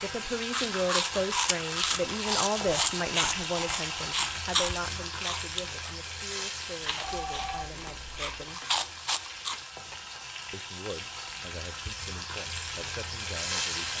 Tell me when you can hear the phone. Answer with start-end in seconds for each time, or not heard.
7.0-8.3.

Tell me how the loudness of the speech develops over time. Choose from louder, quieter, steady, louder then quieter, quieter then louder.
quieter.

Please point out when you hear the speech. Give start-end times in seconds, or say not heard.
0.0-8.6, 10.5-13.9.